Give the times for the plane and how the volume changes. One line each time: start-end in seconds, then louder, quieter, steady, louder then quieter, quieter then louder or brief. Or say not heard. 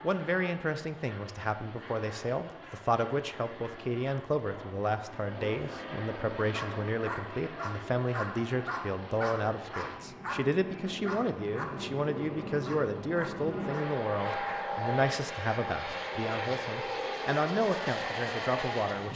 0.0-19.1 louder.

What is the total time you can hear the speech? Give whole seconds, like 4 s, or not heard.
19 s.